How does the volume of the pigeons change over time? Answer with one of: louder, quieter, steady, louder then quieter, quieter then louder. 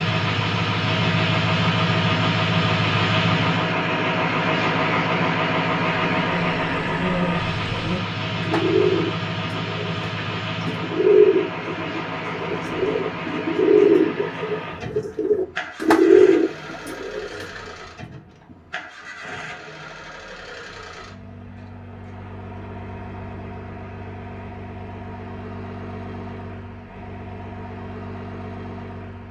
louder.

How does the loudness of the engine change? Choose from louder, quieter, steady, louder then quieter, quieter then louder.
quieter.